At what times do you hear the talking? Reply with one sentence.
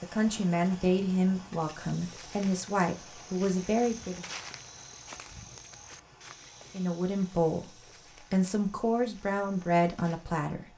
The talking can be heard from 0.0 to 4.2 s and from 6.7 to 10.7 s.